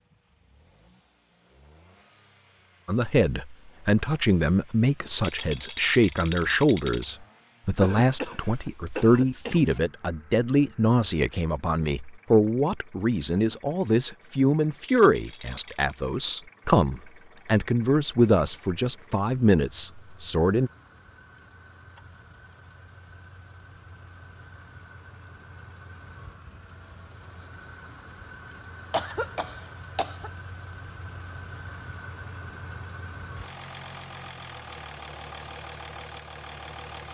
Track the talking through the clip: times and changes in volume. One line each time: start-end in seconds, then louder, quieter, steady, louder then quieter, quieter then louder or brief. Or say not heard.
2.9-20.7 steady.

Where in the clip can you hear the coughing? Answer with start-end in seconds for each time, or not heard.
7.8-9.8, 28.9-30.3.